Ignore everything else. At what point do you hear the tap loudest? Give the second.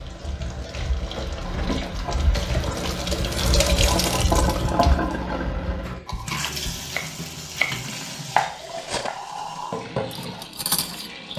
4 s.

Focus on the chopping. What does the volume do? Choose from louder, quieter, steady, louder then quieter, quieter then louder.
louder then quieter.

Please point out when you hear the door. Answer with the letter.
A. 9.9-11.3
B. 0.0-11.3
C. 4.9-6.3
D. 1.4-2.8
D.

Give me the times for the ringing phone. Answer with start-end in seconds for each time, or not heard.
not heard.